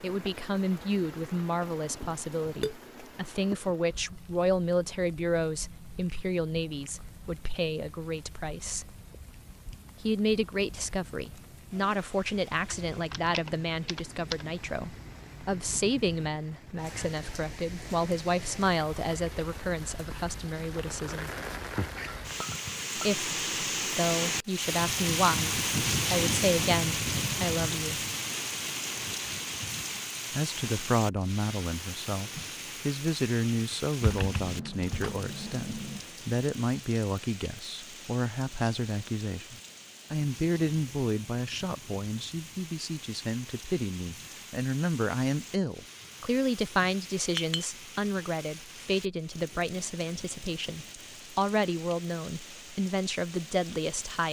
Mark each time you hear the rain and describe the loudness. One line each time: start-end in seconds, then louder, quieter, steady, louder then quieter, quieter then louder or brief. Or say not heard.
0.0-54.2 louder then quieter.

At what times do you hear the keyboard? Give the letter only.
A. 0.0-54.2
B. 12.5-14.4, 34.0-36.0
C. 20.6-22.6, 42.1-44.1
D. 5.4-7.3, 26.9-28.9
B.